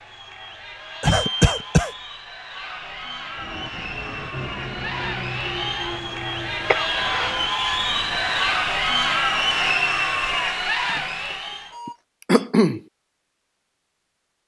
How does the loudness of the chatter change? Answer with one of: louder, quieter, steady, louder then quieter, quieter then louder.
louder.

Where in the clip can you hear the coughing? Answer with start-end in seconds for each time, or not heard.
1.0-1.9, 6.7-7.4, 11.8-12.8.